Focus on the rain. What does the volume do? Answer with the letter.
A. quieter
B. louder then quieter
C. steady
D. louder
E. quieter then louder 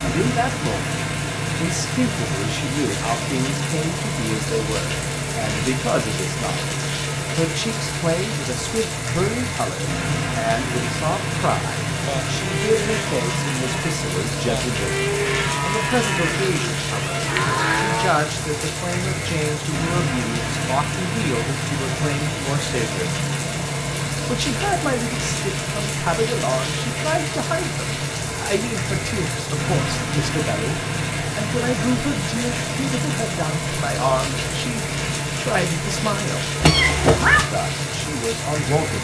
C.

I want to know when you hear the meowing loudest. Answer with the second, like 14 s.
37 s.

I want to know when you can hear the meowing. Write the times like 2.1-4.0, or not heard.
16.2-17.9, 36.6-37.5.